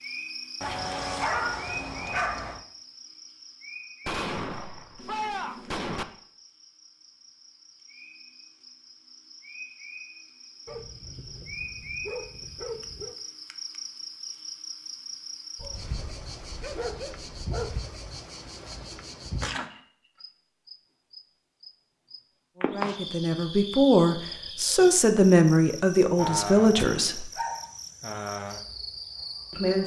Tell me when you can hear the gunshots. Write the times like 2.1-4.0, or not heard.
4.0-6.0, 26.8-27.2.